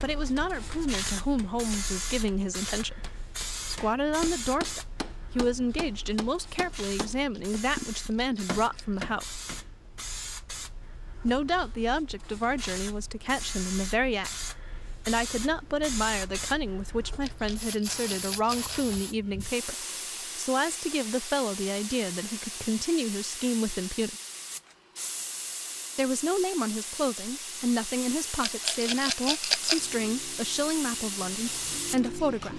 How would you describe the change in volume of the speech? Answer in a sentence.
The volume of the speech stays about the same.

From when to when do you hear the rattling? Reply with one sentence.
You can hear the rattling from 7.1 to 9.1 s, from 17.2 to 18.9 s and from 28.4 to 29.9 s.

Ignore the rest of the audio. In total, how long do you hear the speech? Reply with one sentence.
You can hear the speech for 29 seconds altogether.